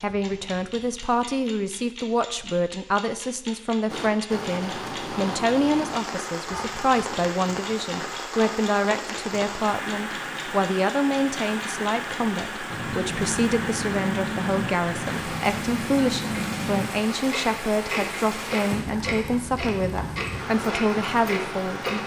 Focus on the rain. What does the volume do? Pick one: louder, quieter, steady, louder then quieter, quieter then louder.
steady.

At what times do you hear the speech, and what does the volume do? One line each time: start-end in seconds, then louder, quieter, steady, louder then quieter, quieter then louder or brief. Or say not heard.
0.0-22.0 steady.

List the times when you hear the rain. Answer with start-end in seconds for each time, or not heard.
3.9-22.0.